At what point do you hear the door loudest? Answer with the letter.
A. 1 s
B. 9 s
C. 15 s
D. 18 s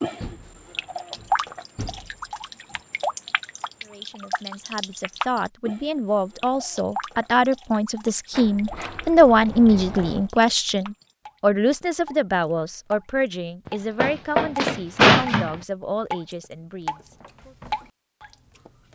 C.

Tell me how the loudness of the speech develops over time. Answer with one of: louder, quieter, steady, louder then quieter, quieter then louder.
louder then quieter.